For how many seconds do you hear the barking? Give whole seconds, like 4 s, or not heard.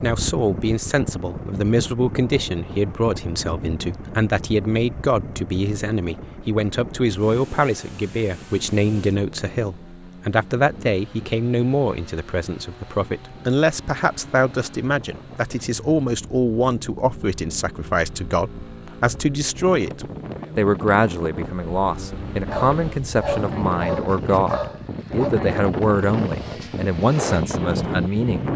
3 s.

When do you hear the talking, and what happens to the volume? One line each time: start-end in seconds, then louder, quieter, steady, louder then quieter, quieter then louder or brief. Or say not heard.
0.0-28.5 steady.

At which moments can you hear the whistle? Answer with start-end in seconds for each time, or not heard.
not heard.